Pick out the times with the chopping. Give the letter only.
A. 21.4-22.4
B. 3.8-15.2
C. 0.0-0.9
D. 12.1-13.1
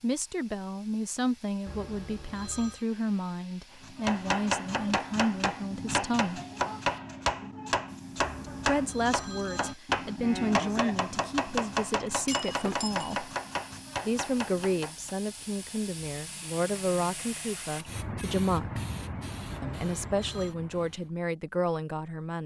B.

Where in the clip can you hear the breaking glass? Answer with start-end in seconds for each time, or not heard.
12.1-13.1.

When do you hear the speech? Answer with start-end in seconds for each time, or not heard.
0.0-6.4, 8.7-13.3, 14.1-18.8, 19.6-22.4.